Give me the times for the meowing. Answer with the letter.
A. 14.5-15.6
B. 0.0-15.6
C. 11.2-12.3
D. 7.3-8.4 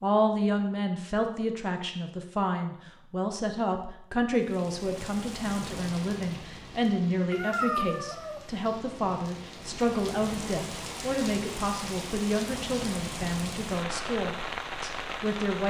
D.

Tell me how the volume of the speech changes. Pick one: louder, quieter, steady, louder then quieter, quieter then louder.
steady.